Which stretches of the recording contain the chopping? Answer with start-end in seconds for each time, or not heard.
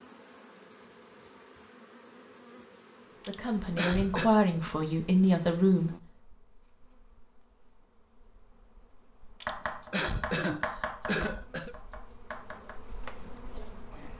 9.4-14.1.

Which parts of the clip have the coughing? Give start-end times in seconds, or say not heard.
3.2-4.3, 9.4-11.8.